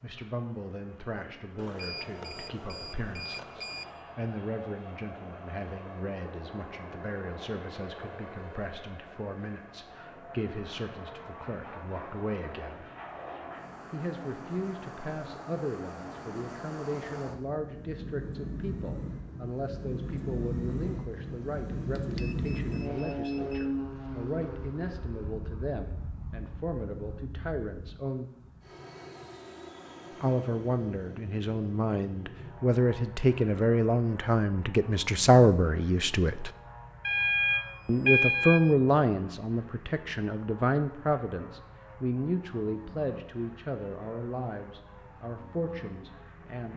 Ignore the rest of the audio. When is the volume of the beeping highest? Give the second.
38 s.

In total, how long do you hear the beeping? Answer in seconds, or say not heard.
6 s.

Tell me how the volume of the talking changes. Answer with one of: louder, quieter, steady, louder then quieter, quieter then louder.
louder.